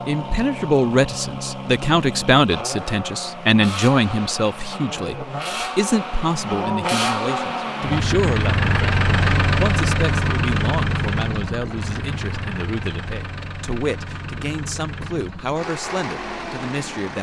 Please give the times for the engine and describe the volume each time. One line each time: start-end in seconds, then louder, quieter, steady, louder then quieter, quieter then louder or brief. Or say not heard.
0.0-17.1 louder then quieter.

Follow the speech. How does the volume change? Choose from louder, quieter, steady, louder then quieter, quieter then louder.
quieter.